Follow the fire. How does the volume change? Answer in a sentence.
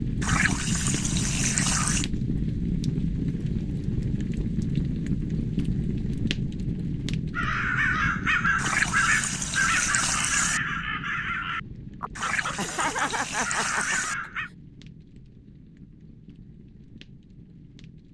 The loudness of the fire goes down.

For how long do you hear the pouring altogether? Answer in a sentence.
You can hear the pouring for 6 seconds altogether.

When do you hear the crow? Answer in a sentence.
The crow can be heard from 7.3 to 14.5 s.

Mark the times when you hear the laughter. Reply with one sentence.
You can hear the laughter from 12.6 to 14.1 s.